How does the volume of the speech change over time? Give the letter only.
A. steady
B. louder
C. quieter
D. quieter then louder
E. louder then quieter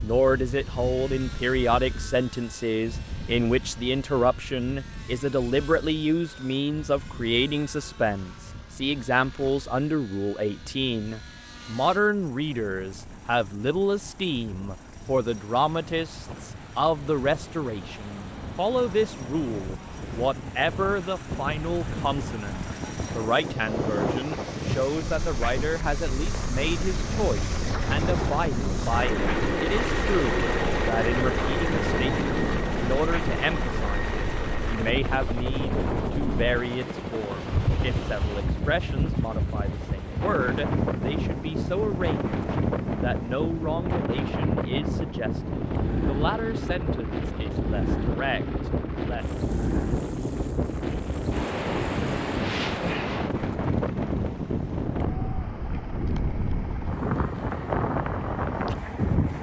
C.